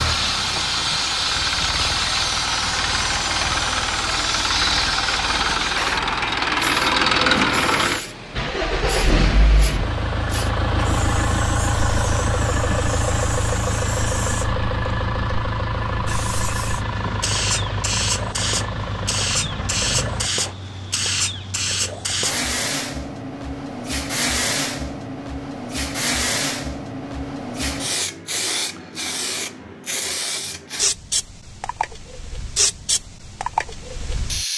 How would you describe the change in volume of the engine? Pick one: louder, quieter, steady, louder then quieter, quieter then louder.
louder then quieter.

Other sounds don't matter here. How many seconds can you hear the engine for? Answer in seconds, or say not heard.
20 s.